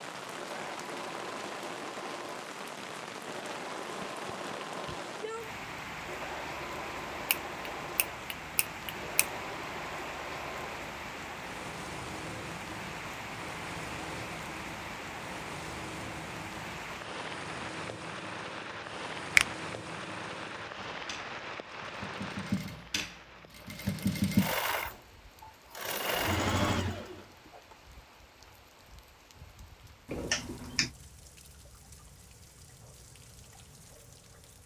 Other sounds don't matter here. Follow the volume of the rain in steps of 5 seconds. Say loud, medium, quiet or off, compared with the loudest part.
loud, loud, loud, loud, loud, quiet, quiet.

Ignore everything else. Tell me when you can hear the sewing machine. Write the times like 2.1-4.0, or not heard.
0.2-27.6.